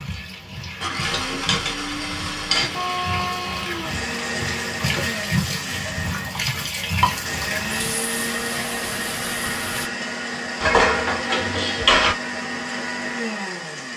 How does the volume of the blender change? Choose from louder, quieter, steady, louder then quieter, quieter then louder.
steady.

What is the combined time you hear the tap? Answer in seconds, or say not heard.
10 s.